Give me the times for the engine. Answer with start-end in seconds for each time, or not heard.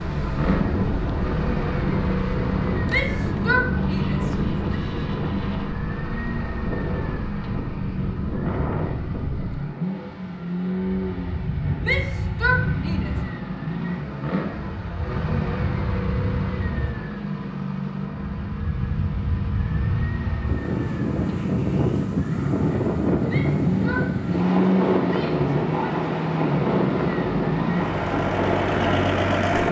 0.0-29.6.